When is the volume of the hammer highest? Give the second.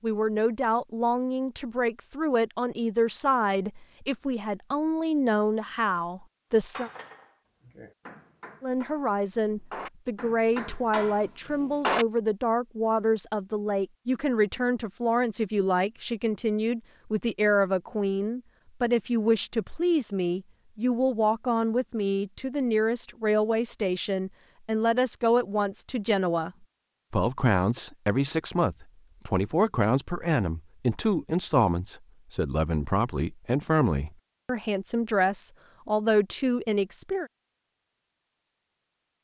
12 s.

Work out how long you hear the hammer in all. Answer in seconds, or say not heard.
5 s.